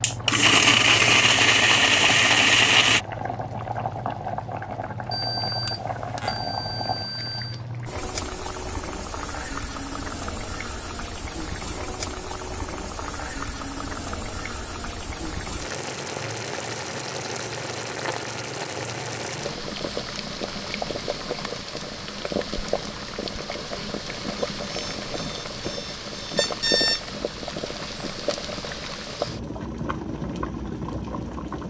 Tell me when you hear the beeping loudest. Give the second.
27 s.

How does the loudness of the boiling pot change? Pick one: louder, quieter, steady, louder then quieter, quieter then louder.
steady.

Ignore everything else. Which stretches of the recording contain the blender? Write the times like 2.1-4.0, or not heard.
0.0-3.0.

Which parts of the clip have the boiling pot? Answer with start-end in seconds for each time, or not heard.
0.0-31.6.